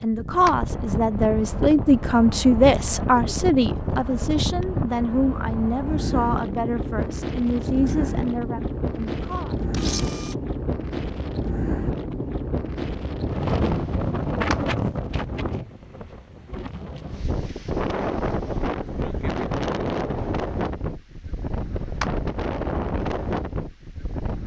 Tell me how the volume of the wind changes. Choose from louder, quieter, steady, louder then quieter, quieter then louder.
steady.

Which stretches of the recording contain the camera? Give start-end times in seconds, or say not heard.
9.7-10.3.